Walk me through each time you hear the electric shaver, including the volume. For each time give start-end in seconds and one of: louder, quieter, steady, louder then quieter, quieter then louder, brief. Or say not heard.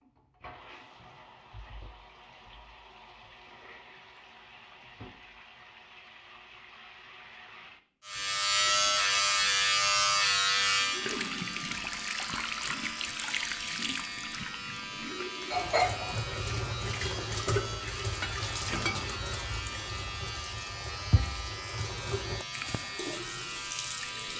8.1-24.3 quieter.